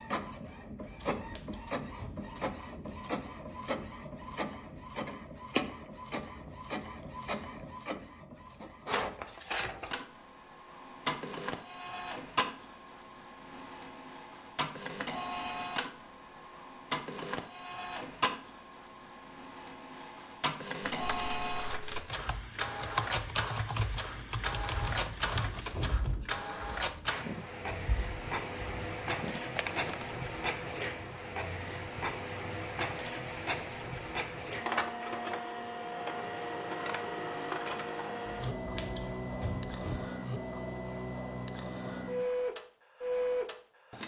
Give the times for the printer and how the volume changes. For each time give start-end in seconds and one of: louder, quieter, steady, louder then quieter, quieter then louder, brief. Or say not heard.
0.0-44.0 steady.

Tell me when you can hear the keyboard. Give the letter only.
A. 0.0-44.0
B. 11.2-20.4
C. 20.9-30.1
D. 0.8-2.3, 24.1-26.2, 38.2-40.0
C.